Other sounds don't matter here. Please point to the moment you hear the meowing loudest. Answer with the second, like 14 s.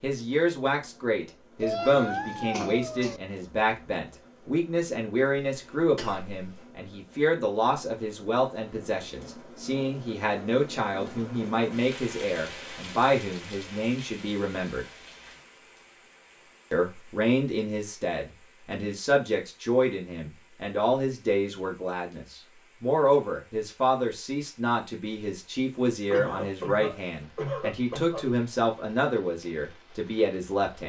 2 s.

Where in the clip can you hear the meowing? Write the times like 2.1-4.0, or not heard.
1.6-3.2.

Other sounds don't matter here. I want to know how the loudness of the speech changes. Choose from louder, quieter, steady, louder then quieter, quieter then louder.
steady.